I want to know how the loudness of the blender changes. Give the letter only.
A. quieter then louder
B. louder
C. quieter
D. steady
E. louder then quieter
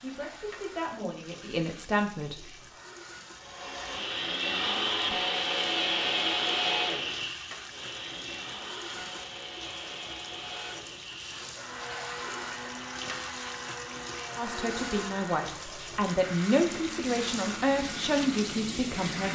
C.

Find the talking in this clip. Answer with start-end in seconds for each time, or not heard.
0.0-2.5, 14.3-19.3.